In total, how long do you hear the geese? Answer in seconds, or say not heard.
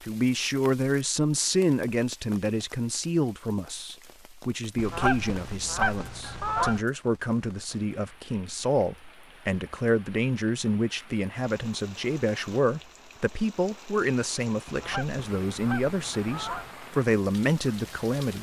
4 s.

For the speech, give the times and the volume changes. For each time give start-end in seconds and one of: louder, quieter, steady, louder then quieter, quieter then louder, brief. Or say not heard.
0.0-18.3 steady.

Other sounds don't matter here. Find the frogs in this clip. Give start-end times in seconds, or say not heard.
not heard.